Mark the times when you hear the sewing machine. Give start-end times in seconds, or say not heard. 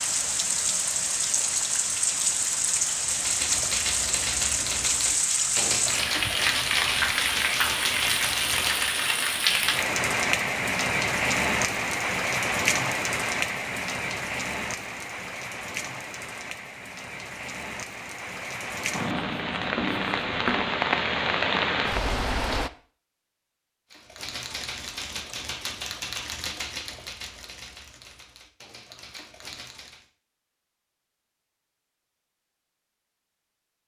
not heard.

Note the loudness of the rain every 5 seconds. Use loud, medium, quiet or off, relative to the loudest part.
loud, loud, loud, medium, loud, off, off.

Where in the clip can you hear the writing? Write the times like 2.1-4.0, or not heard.
18.9-20.8.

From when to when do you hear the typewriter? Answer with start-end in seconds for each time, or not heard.
3.0-9.1, 23.9-30.1.